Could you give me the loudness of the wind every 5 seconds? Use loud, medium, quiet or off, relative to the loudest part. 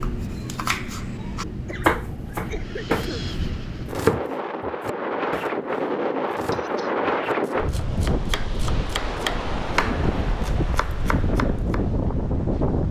medium, loud, loud.